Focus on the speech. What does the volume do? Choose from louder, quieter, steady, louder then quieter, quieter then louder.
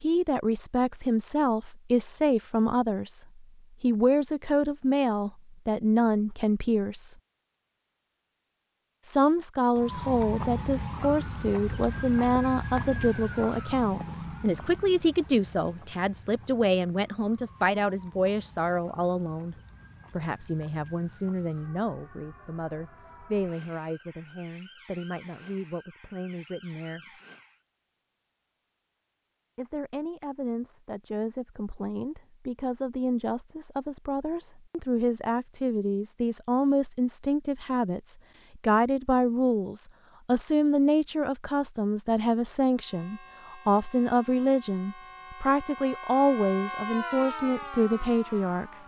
quieter then louder.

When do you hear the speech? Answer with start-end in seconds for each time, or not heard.
0.0-7.2, 9.1-27.2, 29.6-48.8.